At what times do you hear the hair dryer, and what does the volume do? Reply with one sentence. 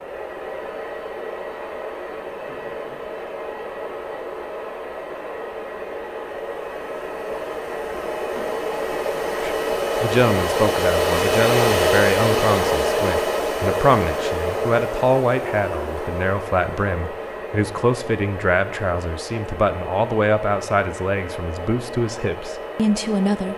The hair dryer can be heard from 0.0 to 23.5 s, getting louder then quieter.